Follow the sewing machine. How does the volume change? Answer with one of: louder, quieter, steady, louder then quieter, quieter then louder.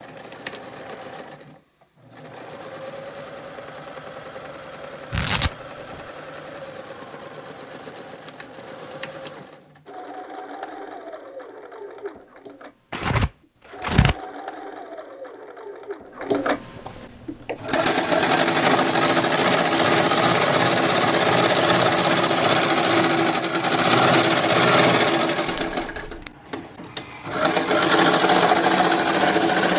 louder.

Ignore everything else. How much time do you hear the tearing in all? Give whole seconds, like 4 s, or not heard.
3 s.